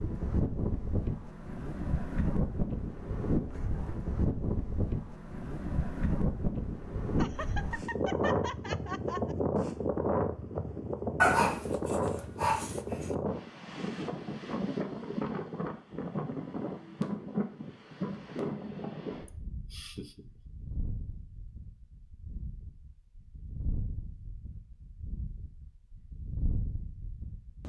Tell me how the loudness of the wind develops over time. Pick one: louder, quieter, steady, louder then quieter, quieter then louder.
quieter.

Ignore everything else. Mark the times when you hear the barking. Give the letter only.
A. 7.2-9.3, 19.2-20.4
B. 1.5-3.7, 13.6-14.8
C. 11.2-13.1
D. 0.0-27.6
C.